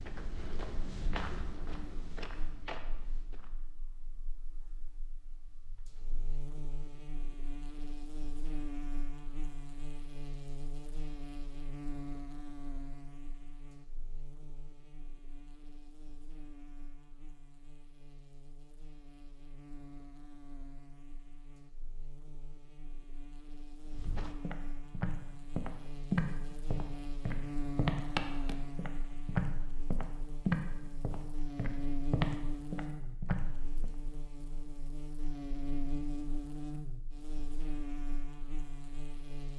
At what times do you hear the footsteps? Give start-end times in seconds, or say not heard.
0.0-3.6, 23.9-33.9.